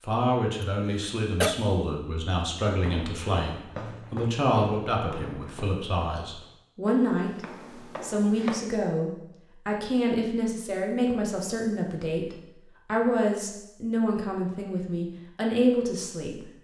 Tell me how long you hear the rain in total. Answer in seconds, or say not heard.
not heard.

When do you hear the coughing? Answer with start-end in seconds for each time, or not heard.
0.9-1.6.